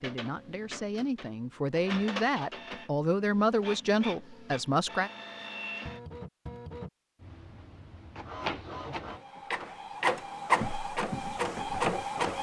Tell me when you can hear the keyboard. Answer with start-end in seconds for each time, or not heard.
not heard.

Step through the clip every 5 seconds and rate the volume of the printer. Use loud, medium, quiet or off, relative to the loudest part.
quiet, medium, loud.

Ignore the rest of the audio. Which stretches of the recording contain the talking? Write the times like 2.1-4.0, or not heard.
0.0-5.1.